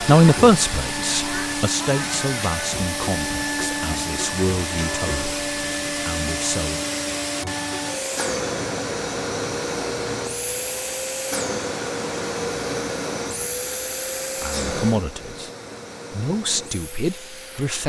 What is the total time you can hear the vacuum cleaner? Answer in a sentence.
The vacuum cleaner can be heard for 18 seconds in total.